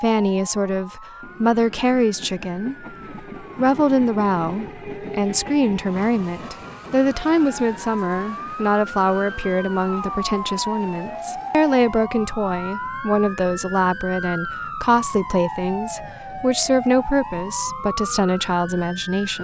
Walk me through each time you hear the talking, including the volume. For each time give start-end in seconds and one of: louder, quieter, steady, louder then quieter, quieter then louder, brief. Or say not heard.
0.0-19.3 steady.